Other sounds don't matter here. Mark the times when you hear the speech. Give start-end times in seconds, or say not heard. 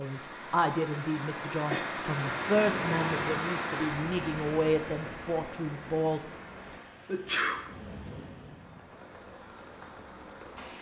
0.0-6.2.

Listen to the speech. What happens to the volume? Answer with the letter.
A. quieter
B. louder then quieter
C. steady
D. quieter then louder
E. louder
C.